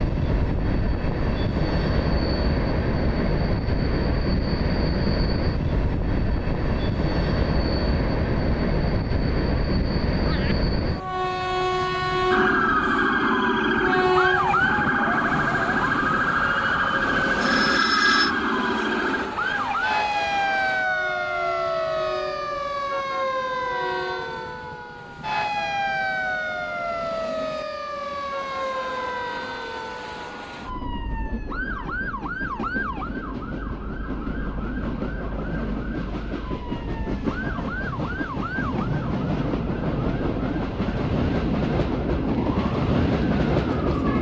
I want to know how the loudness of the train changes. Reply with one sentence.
The volume of the train goes down, then up.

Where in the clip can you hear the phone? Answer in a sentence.
You can hear the phone from 17.4 to 18.3 s.